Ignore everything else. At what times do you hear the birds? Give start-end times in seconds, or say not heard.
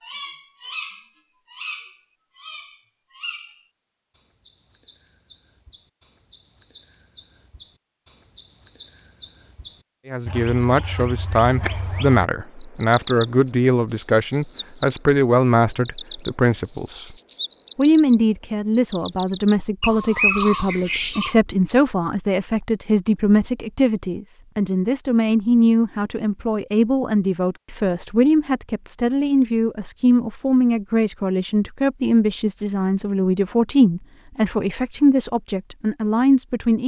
0.0-21.4.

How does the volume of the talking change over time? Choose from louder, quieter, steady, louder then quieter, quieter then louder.
steady.